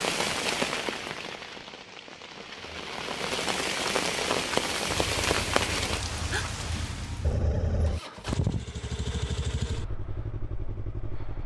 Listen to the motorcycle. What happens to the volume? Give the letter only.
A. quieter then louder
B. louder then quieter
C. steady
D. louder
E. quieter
B.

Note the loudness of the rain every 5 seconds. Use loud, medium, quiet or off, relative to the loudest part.
loud, loud, off.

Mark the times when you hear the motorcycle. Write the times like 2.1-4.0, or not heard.
4.8-11.4.